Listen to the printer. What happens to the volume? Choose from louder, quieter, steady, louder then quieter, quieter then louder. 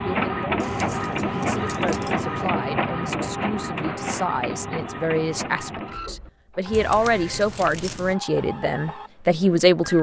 quieter.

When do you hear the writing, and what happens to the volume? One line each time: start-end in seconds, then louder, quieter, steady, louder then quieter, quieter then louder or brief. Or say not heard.
not heard.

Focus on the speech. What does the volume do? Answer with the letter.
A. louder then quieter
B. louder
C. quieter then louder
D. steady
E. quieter
B.